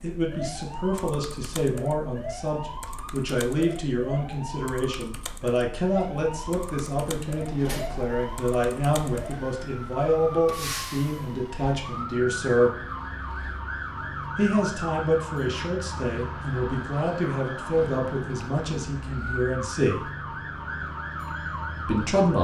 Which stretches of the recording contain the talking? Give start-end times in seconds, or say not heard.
0.0-12.7, 14.3-20.1, 21.9-22.3.